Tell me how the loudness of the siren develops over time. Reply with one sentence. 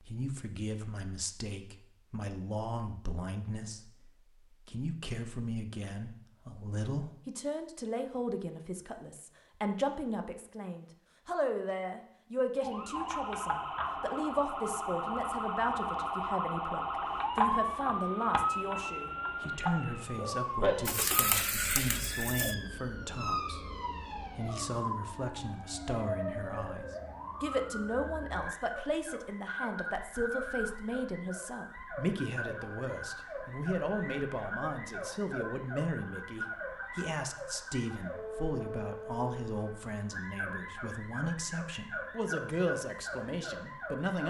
The volume of the siren goes down.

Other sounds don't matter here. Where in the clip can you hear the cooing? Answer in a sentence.
The cooing can be heard from 20.9 to 22.6 s.